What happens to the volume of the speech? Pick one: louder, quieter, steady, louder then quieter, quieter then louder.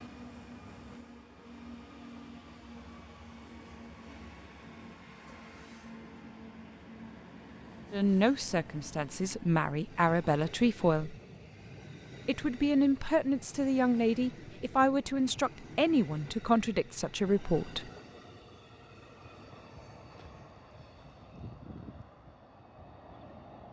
steady.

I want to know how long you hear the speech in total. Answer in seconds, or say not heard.
9 s.